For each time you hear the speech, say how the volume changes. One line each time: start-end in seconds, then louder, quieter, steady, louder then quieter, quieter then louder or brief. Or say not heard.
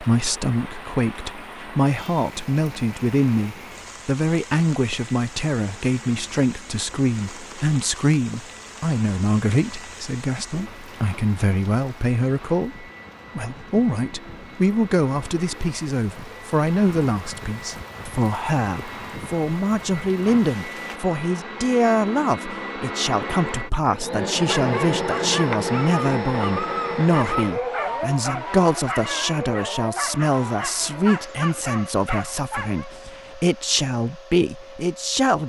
0.0-35.4 steady.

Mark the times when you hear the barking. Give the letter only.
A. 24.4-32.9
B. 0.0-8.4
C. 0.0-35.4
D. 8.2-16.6
A.